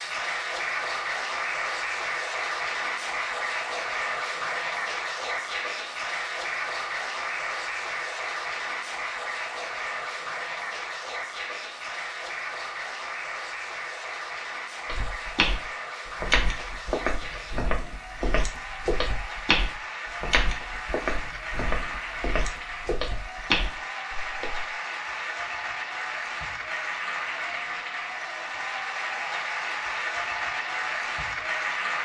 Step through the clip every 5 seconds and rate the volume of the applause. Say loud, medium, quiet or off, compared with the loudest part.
loud, loud, medium, medium, medium, loud, loud.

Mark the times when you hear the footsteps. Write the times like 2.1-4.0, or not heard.
14.8-24.6.